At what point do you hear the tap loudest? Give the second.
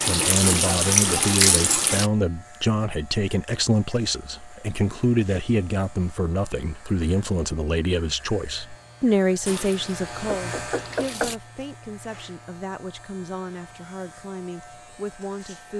1 s.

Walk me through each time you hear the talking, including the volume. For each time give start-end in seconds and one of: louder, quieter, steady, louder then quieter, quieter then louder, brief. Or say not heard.
0.1-15.7 quieter.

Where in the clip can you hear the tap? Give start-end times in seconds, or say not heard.
0.0-2.1, 9.4-11.3.